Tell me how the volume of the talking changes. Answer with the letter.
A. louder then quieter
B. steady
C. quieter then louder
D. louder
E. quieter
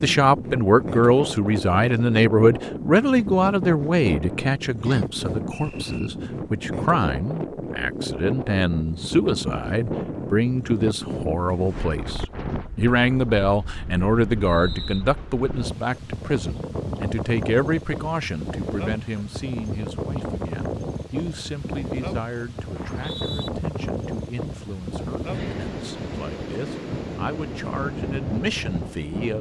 E.